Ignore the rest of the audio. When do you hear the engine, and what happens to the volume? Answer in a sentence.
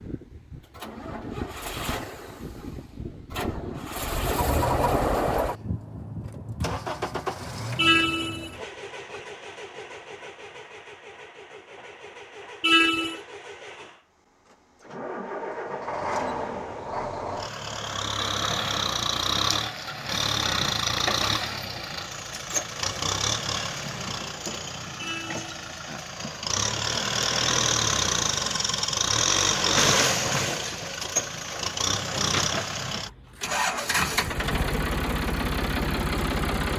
You can hear the engine from 0.0 to 36.7 s, getting quieter then louder.